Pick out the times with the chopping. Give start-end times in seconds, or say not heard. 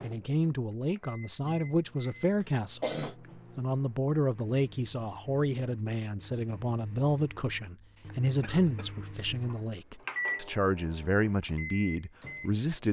not heard.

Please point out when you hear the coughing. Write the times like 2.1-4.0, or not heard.
2.4-3.1, 8.4-9.0.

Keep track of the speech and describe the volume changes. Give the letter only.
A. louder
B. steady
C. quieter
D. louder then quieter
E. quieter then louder
B.